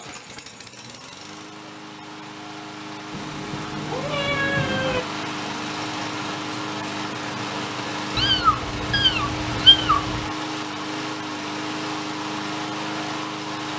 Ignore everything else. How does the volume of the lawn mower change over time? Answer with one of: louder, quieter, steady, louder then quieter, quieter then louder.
louder.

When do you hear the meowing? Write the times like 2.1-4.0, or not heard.
3.1-5.0, 8.2-10.3.